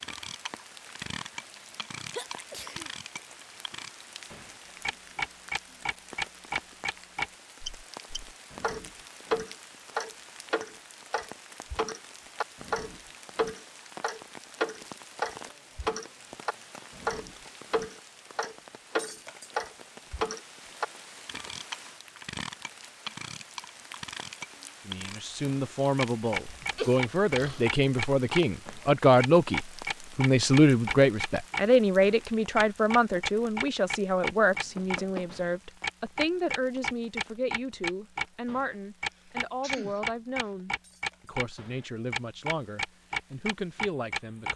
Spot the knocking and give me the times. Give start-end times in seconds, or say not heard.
34.5-35.4.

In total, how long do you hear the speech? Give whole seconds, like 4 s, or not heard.
20 s.